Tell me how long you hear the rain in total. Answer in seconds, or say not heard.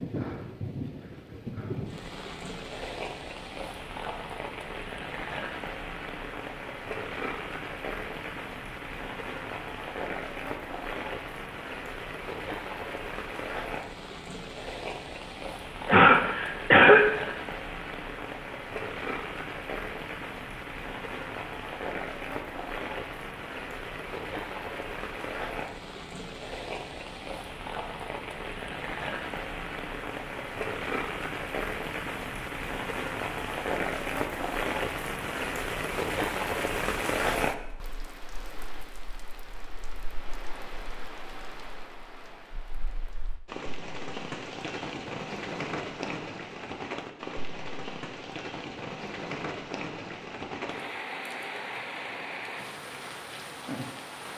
54 s.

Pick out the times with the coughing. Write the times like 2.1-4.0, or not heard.
15.8-17.1.